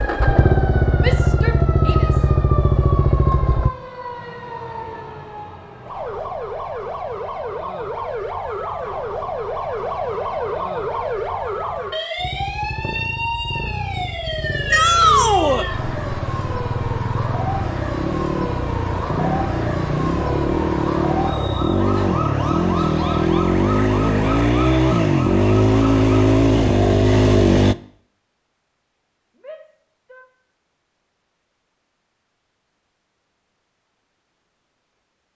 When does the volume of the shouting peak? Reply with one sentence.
The loudest moment of the shouting is at 15 seconds.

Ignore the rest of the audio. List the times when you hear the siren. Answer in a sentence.
The siren can be heard from 0.0 to 26.4 s.